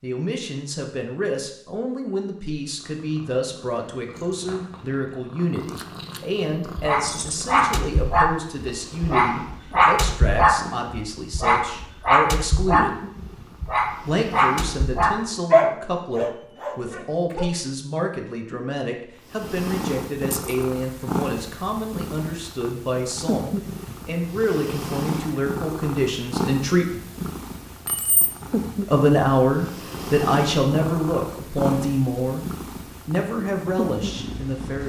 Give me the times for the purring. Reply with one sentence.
The purring can be heard from 2.6 to 15.5 s and from 19.2 to 34.8 s.